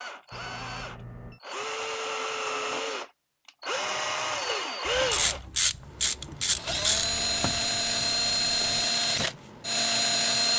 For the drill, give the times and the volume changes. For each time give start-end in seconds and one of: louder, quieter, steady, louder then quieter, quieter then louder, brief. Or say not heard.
0.0-10.5 louder.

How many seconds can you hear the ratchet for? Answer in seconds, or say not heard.
3 s.